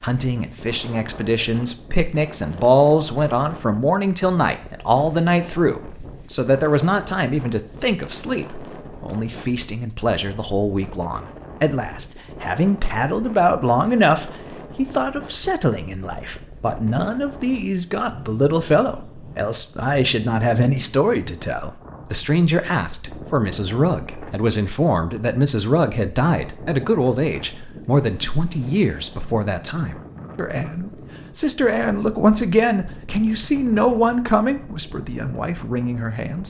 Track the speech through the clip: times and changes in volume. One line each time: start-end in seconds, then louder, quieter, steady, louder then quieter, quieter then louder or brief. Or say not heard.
0.0-36.4 steady.